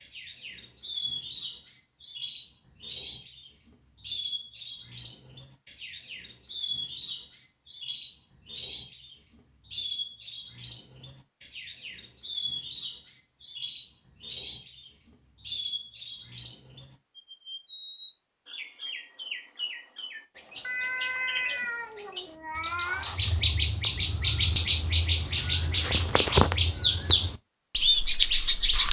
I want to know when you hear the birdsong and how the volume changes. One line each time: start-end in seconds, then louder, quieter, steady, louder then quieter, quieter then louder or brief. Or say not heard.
0.0-28.8 louder.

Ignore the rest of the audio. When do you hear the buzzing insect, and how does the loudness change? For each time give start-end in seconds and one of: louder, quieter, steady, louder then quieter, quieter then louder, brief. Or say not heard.
not heard.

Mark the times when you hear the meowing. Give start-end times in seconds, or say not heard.
20.6-23.1.